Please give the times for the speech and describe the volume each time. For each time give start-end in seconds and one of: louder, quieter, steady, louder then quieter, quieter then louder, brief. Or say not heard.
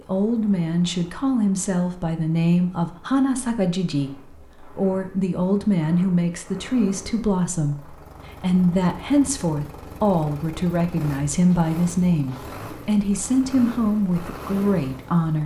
0.1-15.4 steady.